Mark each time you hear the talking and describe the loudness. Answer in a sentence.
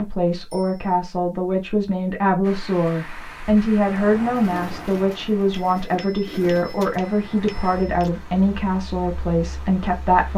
The talking can be heard from 0.0 to 10.3 s, at a steady volume.